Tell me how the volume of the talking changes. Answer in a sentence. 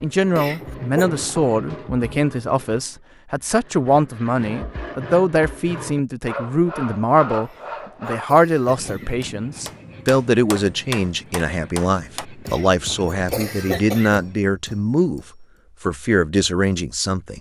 The volume of the talking stays about the same.